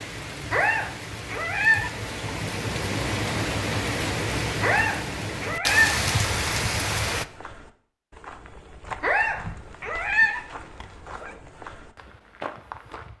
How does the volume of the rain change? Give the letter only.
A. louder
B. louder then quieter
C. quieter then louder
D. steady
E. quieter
A.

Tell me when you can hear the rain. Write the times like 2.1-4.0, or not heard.
0.0-7.2.